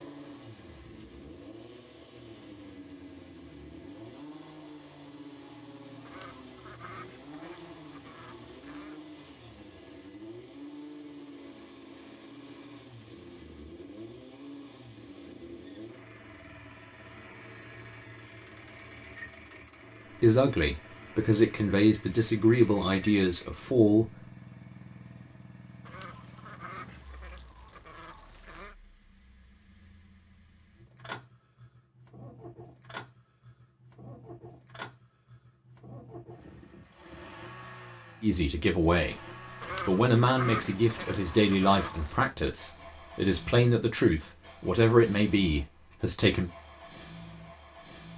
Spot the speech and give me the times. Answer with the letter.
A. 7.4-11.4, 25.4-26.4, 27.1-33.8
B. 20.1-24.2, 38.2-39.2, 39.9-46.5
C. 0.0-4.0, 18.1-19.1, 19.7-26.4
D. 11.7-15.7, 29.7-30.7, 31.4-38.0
B.